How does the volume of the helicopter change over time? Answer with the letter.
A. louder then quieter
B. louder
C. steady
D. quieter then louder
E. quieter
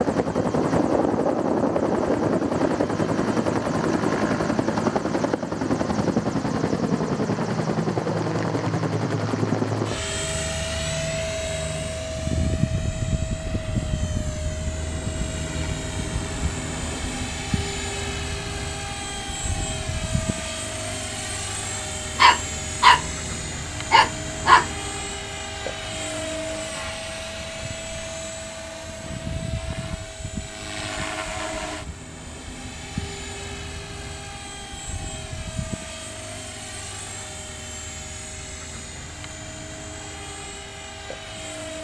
E.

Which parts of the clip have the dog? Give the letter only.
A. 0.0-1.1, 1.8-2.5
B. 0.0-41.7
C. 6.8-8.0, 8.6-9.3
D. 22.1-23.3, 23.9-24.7
D.